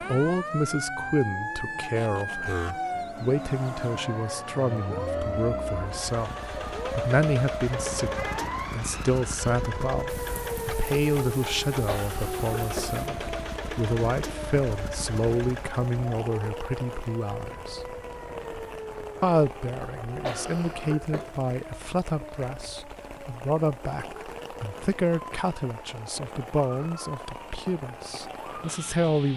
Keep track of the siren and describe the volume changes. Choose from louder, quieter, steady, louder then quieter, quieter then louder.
quieter.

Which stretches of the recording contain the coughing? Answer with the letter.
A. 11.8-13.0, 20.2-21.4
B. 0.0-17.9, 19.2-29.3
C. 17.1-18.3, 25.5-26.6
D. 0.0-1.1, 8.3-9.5
A.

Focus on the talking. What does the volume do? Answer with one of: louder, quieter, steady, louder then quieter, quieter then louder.
steady.